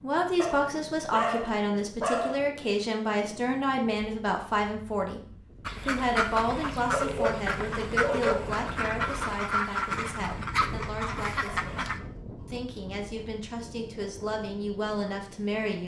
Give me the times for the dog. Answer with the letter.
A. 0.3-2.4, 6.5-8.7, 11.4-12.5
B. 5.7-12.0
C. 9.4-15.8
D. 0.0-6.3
A.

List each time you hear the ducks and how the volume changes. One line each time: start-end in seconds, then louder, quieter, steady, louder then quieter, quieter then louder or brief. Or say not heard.
5.7-12.0 steady.